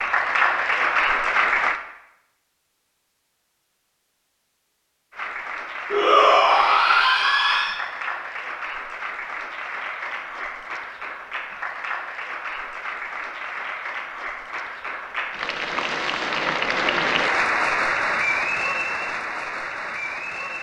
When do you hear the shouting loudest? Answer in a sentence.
The loudest moment of the shouting is at 6 seconds.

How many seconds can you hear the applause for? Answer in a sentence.
The applause can be heard for 17 seconds in total.